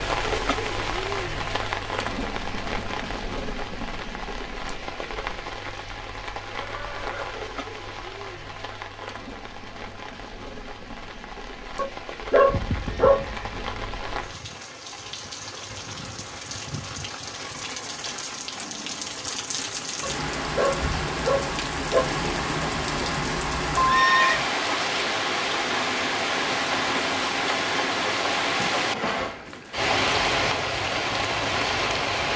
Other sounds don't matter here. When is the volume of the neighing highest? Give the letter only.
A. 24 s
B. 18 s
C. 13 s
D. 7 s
A.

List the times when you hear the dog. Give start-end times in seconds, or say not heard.
11.8-13.2, 20.0-22.1.